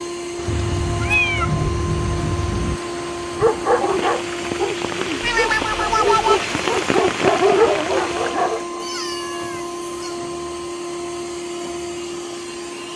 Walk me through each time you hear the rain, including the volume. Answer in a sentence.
You can hear the rain from 0.2 to 8.7 s, getting louder.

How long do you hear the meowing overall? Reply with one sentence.
You can hear the meowing for 5 seconds altogether.